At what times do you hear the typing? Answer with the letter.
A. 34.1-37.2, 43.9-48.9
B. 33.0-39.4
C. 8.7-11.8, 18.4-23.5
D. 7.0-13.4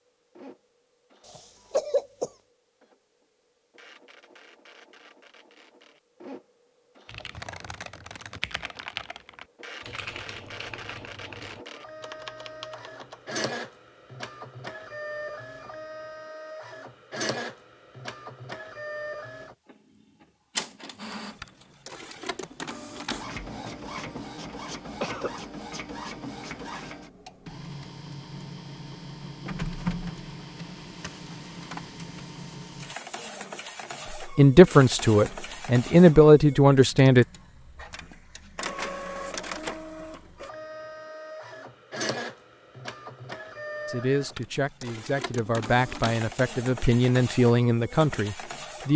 D.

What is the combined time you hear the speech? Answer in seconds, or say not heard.
8 s.